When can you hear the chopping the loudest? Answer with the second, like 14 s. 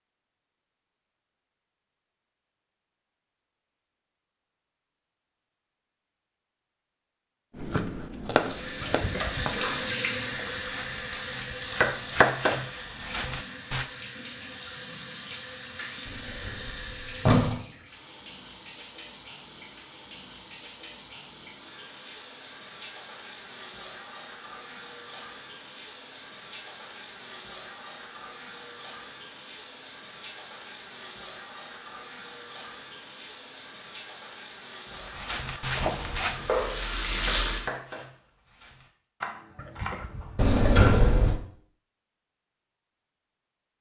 12 s.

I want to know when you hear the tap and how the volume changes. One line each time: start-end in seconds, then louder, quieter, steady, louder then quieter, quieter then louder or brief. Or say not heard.
8.4-37.7 quieter then louder.